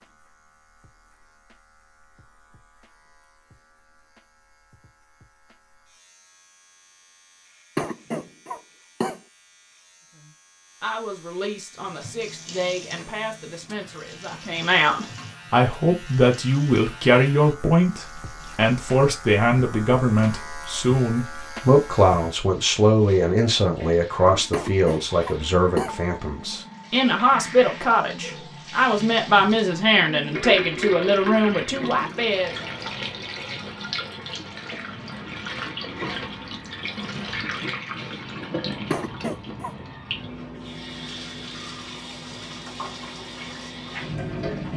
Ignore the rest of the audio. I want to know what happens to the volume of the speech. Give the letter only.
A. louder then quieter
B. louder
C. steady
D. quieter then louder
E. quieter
B.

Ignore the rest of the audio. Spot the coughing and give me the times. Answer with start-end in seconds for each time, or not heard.
7.8-9.2, 24.5-25.9, 38.9-39.8.